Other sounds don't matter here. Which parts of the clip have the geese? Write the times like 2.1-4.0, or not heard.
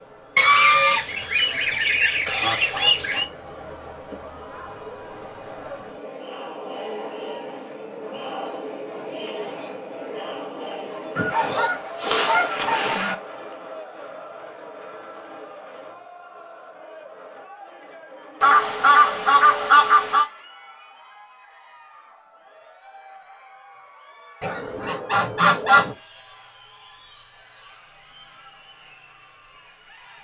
0.3-3.2, 11.2-13.2, 18.4-20.2, 24.4-25.9.